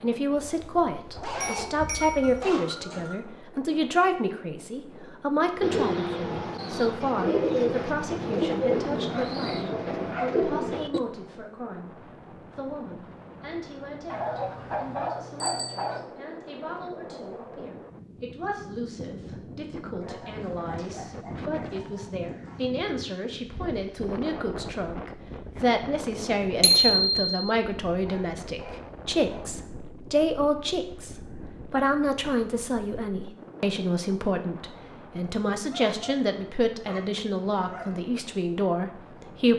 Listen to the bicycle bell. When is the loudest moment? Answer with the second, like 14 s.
27 s.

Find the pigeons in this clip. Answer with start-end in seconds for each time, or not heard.
5.6-11.0.